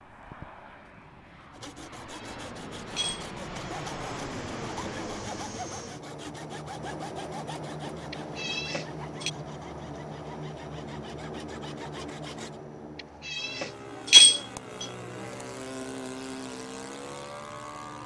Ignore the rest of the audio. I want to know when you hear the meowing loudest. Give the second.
14 s.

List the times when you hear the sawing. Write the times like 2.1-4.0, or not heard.
1.5-12.6.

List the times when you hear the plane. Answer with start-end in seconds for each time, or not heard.
0.0-18.0.